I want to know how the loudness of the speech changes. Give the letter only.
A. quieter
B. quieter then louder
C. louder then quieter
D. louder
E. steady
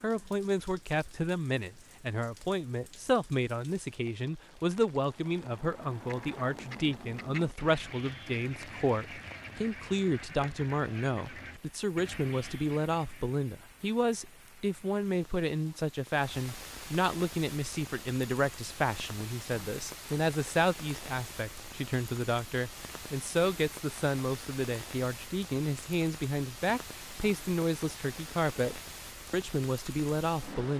E.